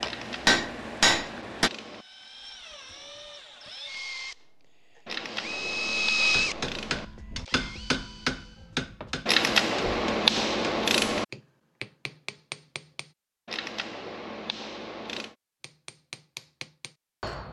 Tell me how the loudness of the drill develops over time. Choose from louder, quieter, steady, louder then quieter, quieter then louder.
louder then quieter.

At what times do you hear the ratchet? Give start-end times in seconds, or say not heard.
0.0-2.0, 5.0-7.0, 9.2-11.2, 13.4-15.3.